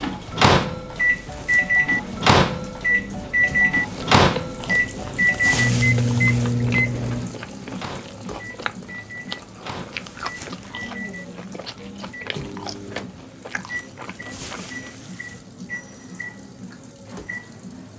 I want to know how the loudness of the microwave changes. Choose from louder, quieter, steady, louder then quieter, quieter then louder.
quieter.